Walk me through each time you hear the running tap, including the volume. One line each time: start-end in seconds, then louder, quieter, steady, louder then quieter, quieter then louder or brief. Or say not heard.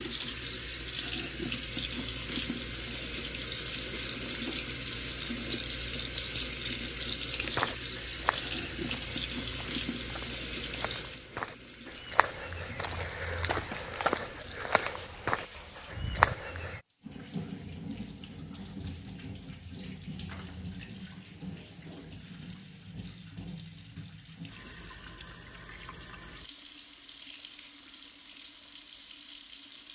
0.0-29.8 quieter.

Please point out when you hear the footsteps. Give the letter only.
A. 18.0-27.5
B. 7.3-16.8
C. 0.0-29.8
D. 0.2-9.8
B.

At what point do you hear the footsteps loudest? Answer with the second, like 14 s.
16 s.